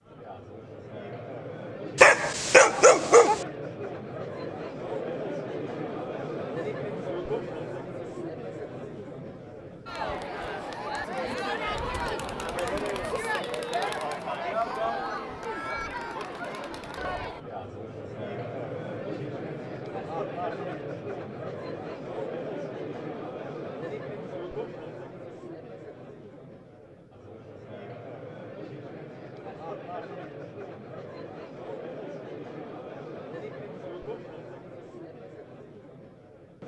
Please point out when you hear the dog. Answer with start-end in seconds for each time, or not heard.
1.9-3.5.